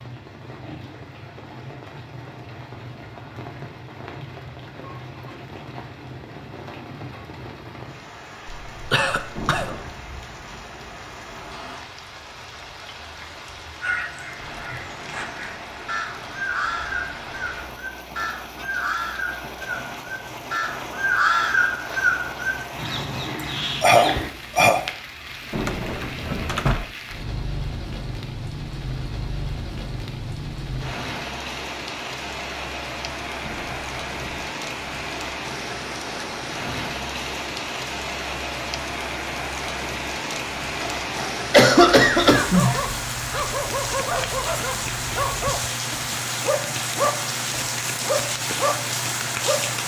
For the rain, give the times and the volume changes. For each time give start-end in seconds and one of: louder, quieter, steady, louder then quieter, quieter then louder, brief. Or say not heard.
0.0-49.8 louder.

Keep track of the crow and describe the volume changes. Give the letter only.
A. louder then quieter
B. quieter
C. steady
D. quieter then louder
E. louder
A.